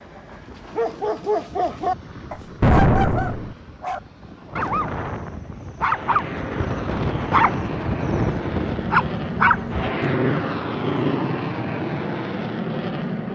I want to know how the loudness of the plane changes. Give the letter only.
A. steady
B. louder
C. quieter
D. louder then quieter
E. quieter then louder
B.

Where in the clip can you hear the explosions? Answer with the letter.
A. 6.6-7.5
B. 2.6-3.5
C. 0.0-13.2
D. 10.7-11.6
B.